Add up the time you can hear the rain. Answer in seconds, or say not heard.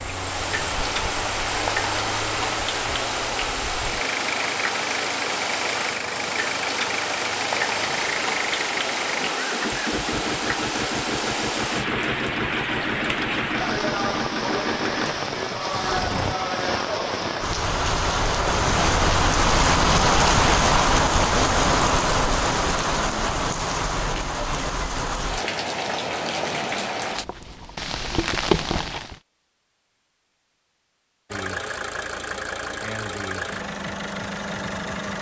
29 s.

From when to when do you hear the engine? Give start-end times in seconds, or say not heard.
0.0-16.4, 31.3-35.1.